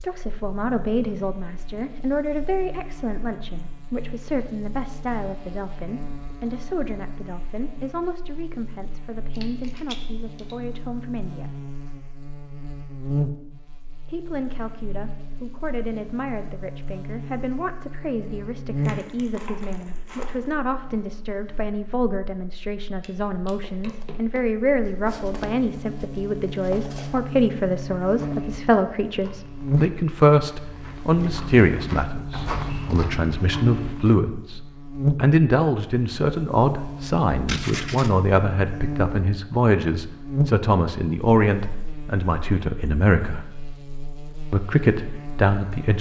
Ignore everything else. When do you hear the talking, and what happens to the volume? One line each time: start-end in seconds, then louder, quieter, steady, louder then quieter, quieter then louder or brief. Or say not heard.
0.0-11.6 quieter
14.1-43.5 louder
44.5-45.9 brief.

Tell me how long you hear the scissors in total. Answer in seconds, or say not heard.
3 s.